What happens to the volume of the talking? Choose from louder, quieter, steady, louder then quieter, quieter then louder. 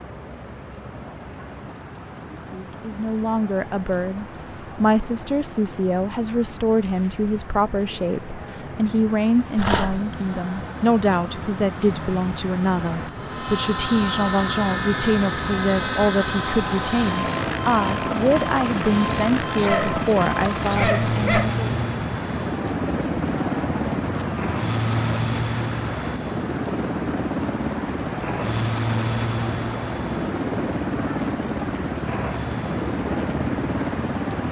steady.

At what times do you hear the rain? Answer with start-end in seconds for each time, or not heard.
0.0-34.4.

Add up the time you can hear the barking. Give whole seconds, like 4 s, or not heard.
3 s.